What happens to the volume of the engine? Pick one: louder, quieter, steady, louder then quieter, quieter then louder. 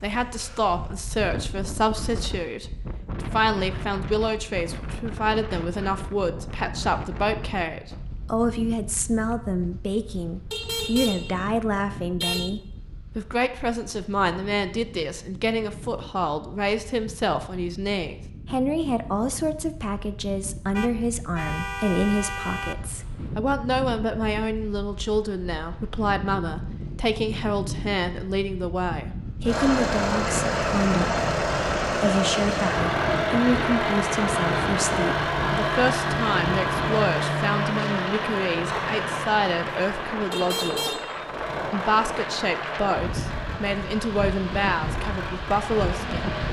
quieter.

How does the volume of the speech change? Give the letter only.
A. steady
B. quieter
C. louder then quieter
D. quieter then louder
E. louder
A.